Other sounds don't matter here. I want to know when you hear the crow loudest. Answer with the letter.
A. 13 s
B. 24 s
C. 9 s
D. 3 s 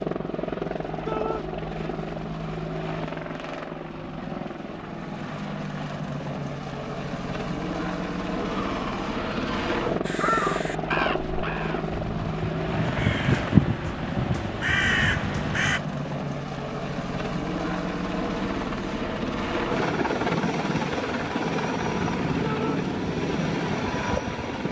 A.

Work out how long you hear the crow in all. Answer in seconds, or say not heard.
6 s.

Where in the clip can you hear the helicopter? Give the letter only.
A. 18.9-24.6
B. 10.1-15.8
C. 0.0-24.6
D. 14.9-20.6
C.